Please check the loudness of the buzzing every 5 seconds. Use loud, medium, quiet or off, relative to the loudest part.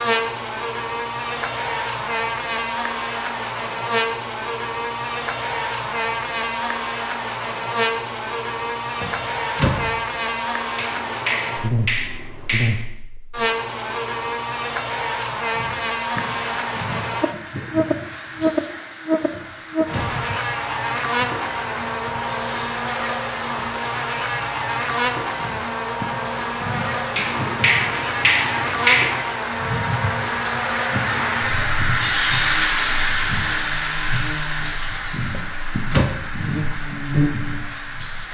loud, loud, loud, loud, loud, loud, medium, loud.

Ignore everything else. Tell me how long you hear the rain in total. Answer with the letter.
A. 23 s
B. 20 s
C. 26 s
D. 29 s
A.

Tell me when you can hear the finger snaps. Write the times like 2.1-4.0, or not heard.
10.8-12.8, 27.1-29.2.